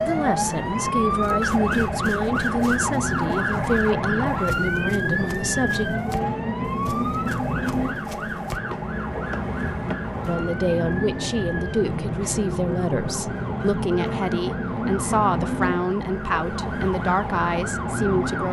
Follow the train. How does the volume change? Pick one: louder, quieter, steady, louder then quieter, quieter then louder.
steady.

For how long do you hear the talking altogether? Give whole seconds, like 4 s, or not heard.
14 s.